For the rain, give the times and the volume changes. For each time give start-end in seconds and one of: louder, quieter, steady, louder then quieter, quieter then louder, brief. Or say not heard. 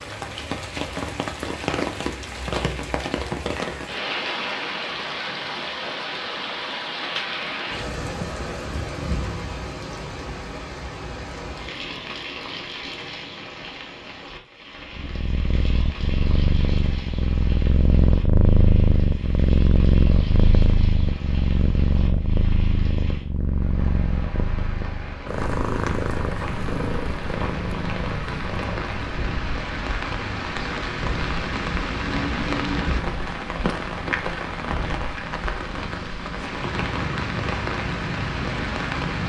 0.0-39.2 quieter then louder.